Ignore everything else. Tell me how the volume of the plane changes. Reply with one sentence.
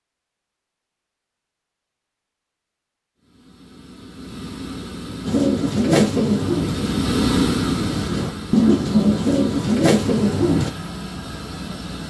The volume of the plane goes up, then down.